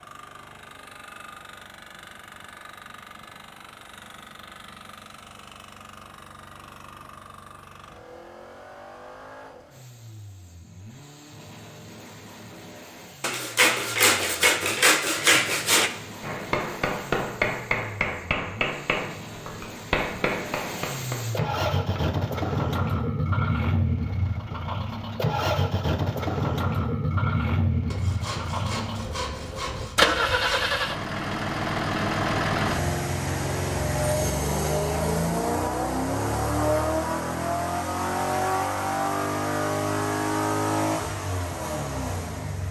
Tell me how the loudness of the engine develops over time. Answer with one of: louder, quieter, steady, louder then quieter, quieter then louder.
louder.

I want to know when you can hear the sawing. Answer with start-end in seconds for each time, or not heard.
13.2-15.9, 27.9-30.8.